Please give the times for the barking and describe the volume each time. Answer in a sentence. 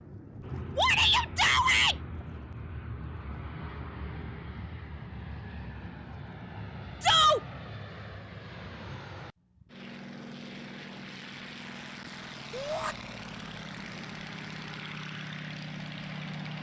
The barking can't be heard in this clip.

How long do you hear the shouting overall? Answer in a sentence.
The shouting can be heard for 2 seconds in total.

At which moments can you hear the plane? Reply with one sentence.
You can hear the plane from 0.0 to 16.5 s.